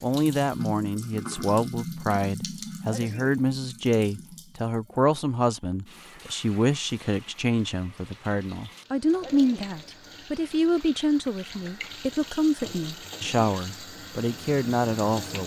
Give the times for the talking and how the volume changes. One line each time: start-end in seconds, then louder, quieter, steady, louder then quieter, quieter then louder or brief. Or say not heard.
0.0-15.4 steady.